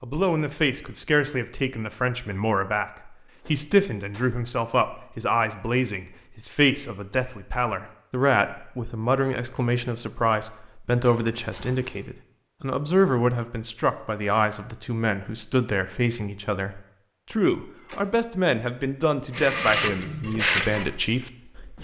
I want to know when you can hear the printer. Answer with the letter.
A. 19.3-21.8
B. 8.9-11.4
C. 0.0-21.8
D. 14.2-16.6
A.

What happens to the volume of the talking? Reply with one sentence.
The loudness of the talking stays about the same.